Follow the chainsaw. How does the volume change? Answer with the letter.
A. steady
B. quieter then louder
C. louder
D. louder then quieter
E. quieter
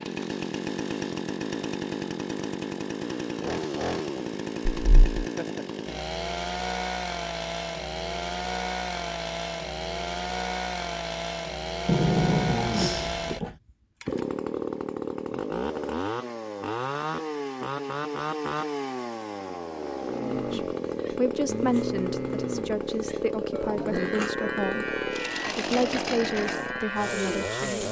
A.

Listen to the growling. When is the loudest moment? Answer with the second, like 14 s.
12 s.